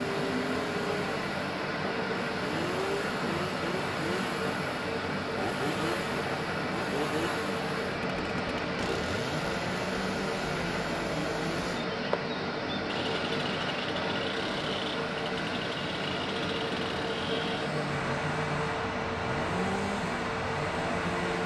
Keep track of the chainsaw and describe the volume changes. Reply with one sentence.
The volume of the chainsaw stays about the same.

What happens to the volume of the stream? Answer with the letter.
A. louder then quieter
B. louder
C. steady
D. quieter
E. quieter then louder
C.